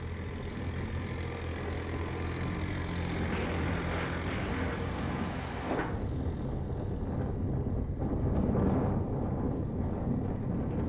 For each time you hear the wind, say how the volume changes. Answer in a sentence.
You can hear the wind from 0.1 to 10.8 s, getting louder.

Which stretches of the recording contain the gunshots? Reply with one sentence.
The gunshots can be heard from 3.2 to 4.8 s.